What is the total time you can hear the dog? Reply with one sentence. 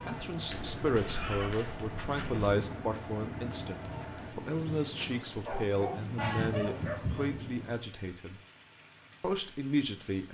The dog can be heard for 3 seconds in total.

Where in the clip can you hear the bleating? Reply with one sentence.
You can hear the bleating from 0.5 to 2.5 s and from 6.2 to 7.4 s.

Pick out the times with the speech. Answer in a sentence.
The speech can be heard from 0.1 to 8.4 s and from 9.2 to 10.2 s.